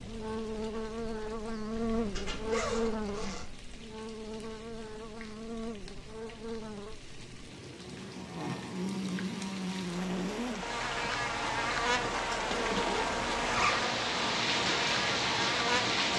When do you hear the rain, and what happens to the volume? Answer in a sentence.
You can hear the rain from 0.0 to 16.1 s, getting louder.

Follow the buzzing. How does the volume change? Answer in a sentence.
The loudness of the buzzing goes down, then up.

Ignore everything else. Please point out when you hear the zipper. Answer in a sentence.
The zipper can be heard from 1.8 to 3.5 s and from 12.5 to 13.8 s.